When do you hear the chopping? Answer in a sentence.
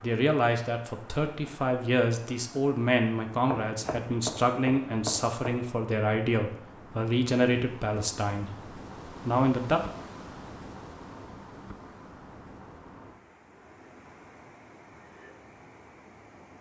You can hear the chopping from 3.5 to 5.4 s.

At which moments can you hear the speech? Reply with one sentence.
You can hear the speech from 0.0 to 9.8 s.